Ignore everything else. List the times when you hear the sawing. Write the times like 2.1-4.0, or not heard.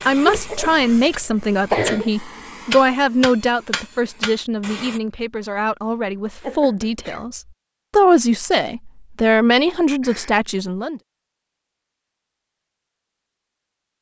not heard.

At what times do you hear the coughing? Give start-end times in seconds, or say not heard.
0.2-2.1, 6.4-7.2, 10.0-10.4.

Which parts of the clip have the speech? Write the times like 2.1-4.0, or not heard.
0.0-11.0.